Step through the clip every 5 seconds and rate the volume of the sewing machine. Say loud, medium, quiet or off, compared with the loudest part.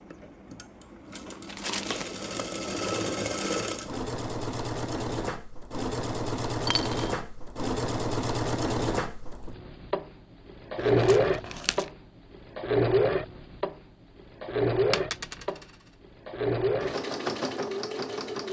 medium, medium, loud, medium.